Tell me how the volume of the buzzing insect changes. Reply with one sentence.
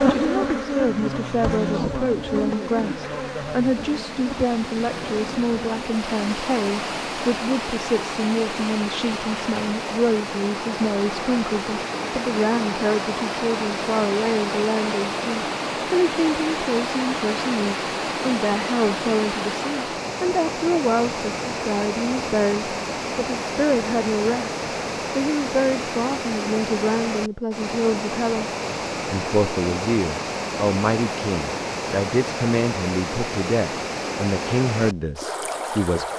The volume of the buzzing insect goes down.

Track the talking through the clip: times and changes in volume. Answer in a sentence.
The talking can be heard from 0.0 to 36.1 s, at a steady volume.